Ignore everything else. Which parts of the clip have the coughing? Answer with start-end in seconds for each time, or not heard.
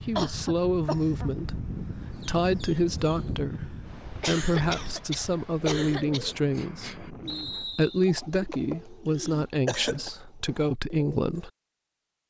0.1-1.3, 4.2-6.2, 8.5-10.1.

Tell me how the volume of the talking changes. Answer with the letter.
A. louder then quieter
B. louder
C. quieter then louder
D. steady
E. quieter
D.